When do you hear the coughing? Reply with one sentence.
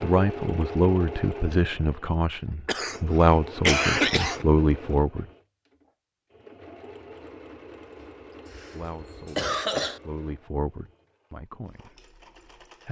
You can hear the coughing from 2.6 to 4.5 s and from 8.5 to 10.0 s.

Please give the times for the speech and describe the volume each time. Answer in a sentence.
The speech can be heard from 0.0 to 5.2 s, getting quieter then louder; and from 8.7 to 12.8 s, getting louder then quieter.